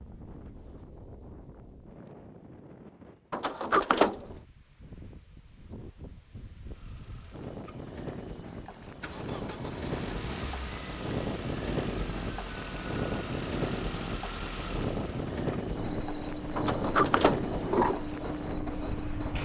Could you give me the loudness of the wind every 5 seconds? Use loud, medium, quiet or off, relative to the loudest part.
quiet, medium, loud, loud.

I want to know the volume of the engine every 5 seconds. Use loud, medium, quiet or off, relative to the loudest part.
off, medium, loud, loud.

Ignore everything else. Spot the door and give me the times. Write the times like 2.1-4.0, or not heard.
3.3-4.3, 16.6-17.9.